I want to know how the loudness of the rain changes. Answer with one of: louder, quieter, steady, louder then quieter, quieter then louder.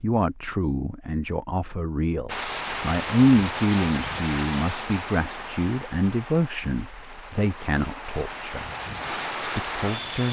quieter then louder.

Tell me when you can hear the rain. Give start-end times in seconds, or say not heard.
2.2-10.2.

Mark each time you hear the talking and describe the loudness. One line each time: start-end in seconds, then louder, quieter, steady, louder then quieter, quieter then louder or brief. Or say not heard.
0.0-8.7 louder then quieter
9.6-10.2 brief.